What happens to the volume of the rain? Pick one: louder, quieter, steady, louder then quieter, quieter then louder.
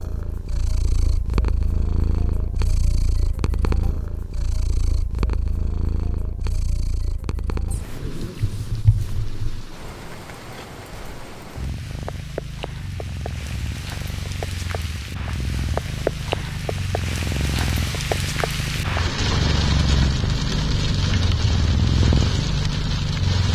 louder.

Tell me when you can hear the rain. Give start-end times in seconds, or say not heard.
7.8-23.5.